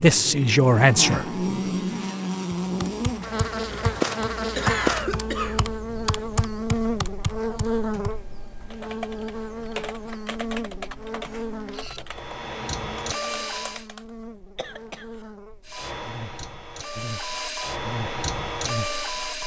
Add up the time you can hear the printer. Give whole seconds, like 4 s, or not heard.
10 s.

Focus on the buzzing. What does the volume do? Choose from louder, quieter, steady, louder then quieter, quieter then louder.
quieter.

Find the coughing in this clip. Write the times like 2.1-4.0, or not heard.
4.5-5.7, 14.6-15.1.